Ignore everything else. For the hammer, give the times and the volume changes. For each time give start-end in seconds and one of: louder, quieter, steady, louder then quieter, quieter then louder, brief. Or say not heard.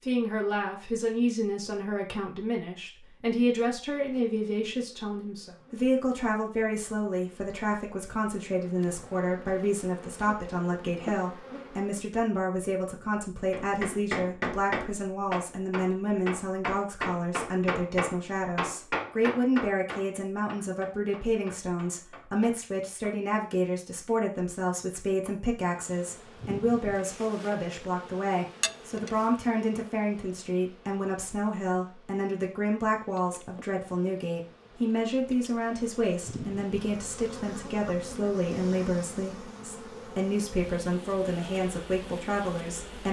13.5-23.2 quieter.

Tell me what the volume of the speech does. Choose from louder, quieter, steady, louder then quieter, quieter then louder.
steady.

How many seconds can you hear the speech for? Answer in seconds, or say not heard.
43 s.